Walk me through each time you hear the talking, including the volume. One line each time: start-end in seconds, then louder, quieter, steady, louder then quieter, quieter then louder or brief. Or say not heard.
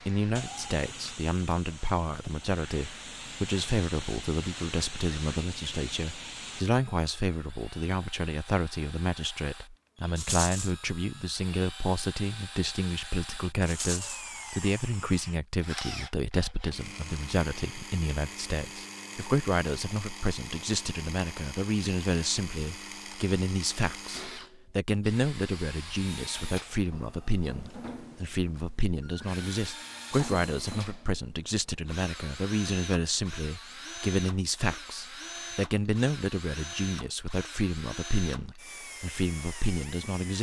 0.1-40.3 steady.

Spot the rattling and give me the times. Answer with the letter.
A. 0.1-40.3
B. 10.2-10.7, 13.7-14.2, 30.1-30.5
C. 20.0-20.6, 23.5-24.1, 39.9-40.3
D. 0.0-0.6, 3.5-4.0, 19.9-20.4
B.